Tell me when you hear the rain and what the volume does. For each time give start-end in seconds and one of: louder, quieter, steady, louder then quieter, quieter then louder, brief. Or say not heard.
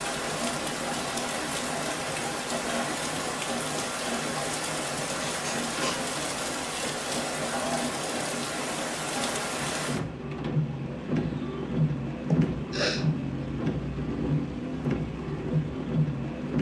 0.0-16.5 steady.